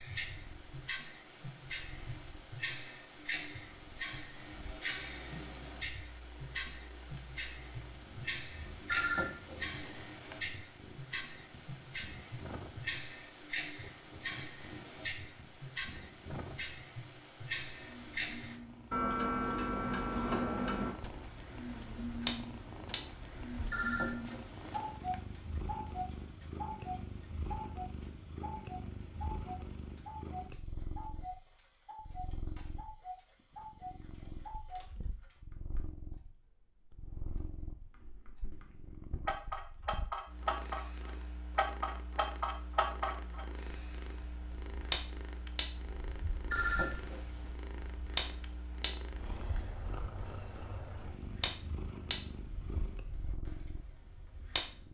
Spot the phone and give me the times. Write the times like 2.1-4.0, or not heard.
8.8-10.4, 23.7-25.2, 46.5-47.5.